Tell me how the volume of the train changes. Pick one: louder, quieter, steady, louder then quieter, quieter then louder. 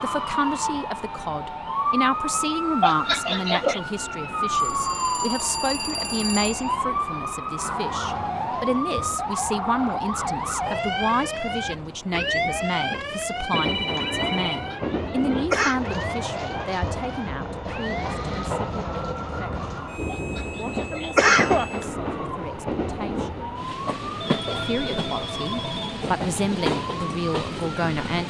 louder.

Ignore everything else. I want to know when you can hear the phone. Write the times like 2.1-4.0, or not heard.
4.5-6.8, 13.5-14.8, 24.2-26.1.